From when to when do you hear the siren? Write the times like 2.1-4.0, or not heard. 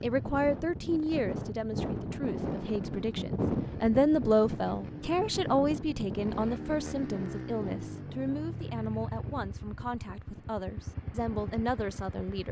not heard.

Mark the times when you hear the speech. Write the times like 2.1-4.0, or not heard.
0.0-12.4.